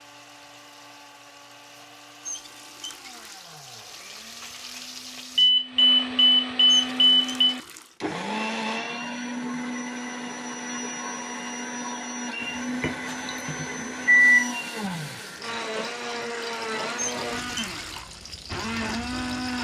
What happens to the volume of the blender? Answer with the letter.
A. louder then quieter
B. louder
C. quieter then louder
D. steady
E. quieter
B.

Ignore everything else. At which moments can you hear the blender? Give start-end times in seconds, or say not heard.
0.0-19.6.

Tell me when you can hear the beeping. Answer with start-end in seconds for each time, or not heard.
5.3-7.5, 12.4-14.4.